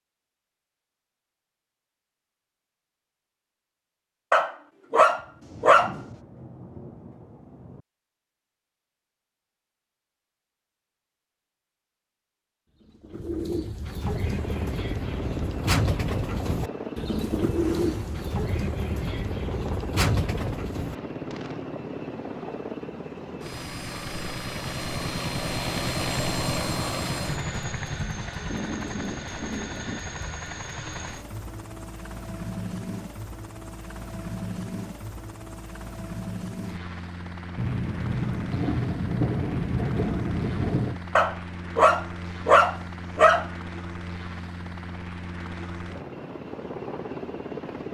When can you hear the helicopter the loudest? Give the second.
26 s.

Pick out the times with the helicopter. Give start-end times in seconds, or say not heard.
13.9-47.8.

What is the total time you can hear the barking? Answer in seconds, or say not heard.
4 s.